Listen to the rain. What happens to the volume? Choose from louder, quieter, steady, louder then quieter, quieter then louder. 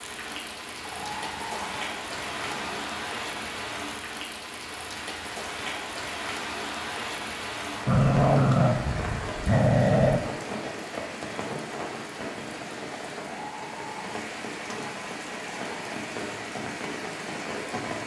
steady.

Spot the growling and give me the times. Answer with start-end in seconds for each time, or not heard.
0.8-2.9, 7.8-10.2, 13.2-15.9.